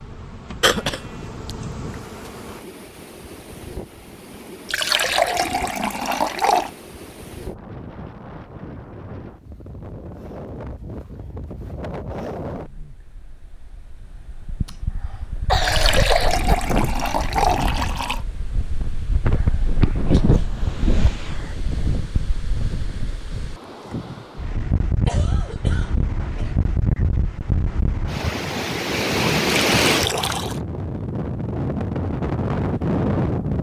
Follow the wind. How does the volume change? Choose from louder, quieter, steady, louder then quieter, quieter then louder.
louder.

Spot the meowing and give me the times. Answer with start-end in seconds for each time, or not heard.
not heard.